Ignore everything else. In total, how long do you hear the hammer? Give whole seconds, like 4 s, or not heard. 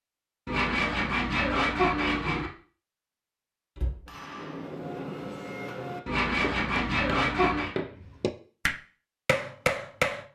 6 s.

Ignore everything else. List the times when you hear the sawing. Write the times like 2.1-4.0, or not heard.
0.5-2.5, 6.0-7.7.